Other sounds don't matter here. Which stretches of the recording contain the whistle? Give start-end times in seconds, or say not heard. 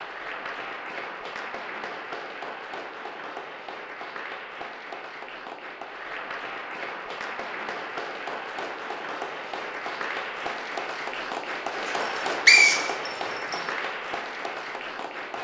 11.9-13.6.